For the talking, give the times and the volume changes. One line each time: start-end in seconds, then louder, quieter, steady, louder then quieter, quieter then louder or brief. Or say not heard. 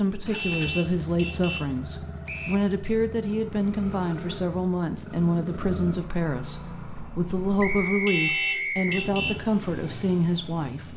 0.0-10.9 steady.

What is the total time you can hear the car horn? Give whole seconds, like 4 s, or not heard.
3 s.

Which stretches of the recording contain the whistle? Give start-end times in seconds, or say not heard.
2.2-2.7, 7.6-9.0.